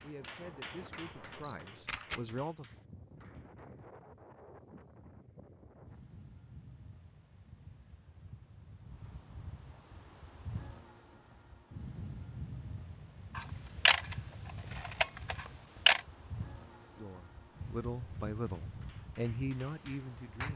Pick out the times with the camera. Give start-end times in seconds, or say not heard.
1.3-2.2, 13.3-14.2, 14.8-16.0.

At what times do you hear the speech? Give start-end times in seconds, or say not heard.
0.0-2.6, 16.9-20.5.